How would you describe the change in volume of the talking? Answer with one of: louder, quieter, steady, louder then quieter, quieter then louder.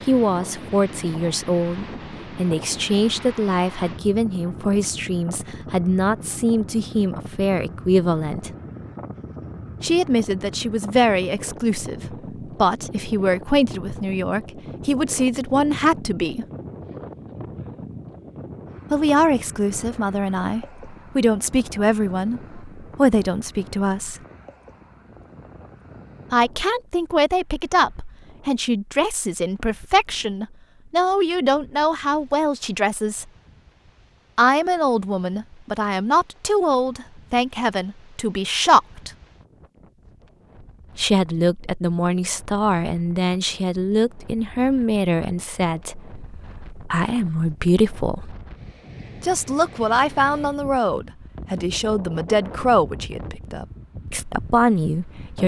steady.